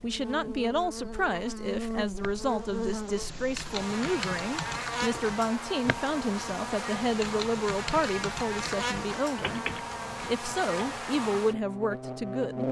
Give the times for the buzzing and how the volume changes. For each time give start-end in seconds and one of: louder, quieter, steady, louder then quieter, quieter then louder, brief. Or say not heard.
0.0-12.6 steady.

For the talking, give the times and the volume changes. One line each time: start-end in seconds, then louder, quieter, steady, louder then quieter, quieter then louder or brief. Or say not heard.
0.0-12.6 steady.